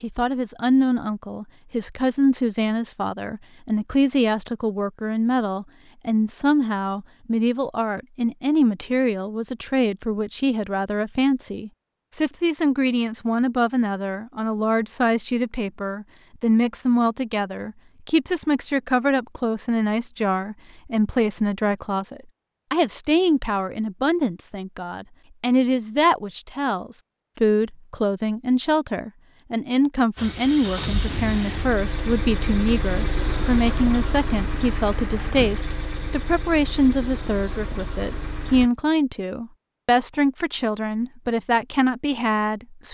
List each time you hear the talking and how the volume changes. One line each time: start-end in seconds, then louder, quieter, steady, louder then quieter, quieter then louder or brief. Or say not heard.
0.0-42.9 steady.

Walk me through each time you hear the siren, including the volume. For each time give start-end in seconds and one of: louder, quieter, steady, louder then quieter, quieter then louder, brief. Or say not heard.
not heard.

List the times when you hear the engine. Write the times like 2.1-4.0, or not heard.
30.1-38.7.